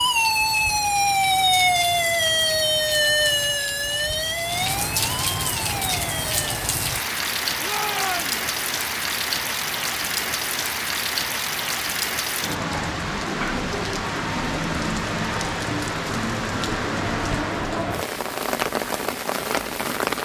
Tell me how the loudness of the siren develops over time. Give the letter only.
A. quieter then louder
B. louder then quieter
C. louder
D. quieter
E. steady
D.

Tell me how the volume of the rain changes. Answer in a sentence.
The loudness of the rain goes up.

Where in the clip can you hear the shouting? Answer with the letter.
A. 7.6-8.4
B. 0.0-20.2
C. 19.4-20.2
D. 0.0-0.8
A.